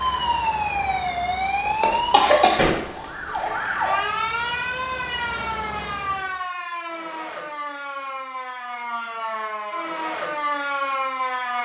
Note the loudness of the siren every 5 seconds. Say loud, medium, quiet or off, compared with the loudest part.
loud, medium, loud.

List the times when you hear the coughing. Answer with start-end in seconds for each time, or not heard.
1.6-3.5.